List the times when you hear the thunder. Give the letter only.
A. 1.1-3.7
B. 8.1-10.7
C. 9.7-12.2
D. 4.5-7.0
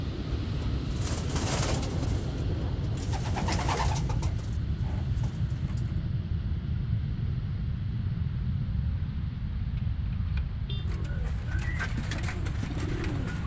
A.